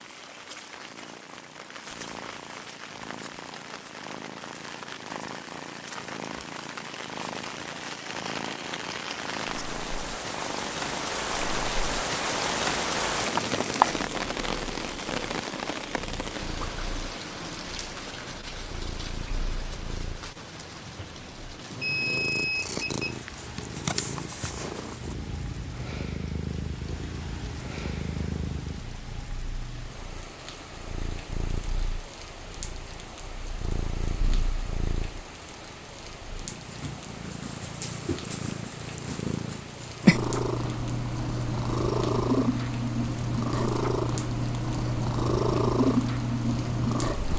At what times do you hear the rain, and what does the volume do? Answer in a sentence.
You can hear the rain from 0.0 to 47.3 s, getting louder then quieter.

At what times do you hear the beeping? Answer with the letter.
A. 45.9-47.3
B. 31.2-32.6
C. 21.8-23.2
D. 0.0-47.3
C.